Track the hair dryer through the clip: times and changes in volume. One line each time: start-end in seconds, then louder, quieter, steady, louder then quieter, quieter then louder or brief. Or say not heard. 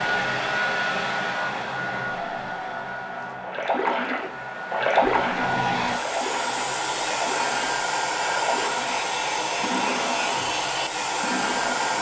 0.0-11.9 quieter then louder.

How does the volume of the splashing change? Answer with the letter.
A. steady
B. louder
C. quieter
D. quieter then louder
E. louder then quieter
C.